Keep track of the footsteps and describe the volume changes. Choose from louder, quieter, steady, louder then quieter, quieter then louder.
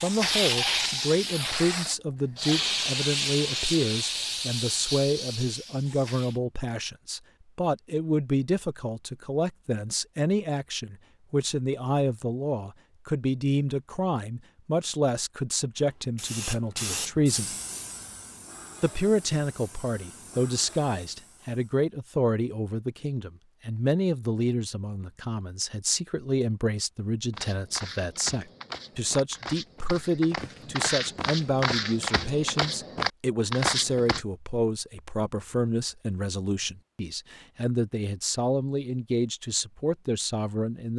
louder.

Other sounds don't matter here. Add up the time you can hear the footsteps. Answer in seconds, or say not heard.
7 s.